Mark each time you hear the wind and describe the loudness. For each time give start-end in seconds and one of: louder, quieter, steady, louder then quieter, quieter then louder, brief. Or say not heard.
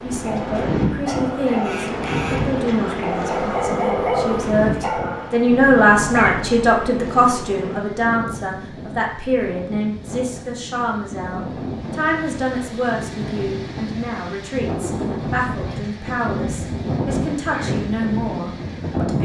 0.0-19.1 quieter then louder.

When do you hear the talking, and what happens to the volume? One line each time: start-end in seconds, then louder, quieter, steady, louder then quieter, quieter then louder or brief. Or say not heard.
0.0-19.1 louder then quieter.